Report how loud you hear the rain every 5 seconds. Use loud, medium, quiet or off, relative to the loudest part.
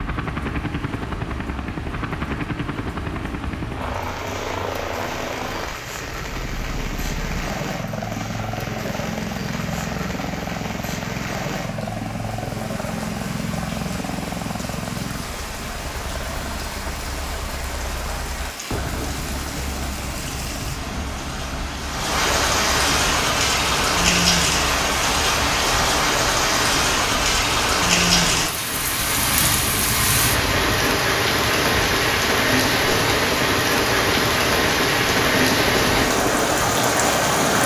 quiet, quiet, quiet, quiet, loud, loud, loud, loud.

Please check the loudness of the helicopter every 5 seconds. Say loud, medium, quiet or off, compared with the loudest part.
loud, loud, loud, medium, medium, medium, loud, loud.